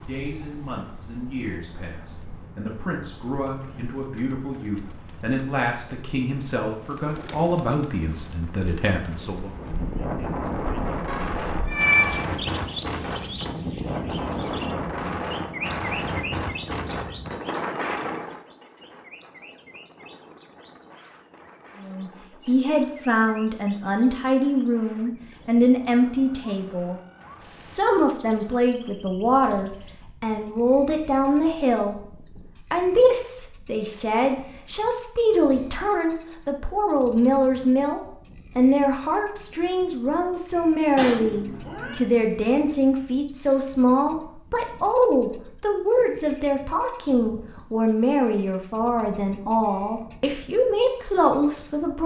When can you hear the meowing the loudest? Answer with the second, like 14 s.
12 s.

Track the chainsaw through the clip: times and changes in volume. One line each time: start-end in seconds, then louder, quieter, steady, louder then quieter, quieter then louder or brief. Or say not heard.
not heard.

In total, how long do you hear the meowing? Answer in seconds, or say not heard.
2 s.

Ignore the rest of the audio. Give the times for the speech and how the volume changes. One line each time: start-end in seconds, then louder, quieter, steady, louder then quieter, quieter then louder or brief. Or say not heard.
0.1-9.6 louder
21.8-52.0 steady.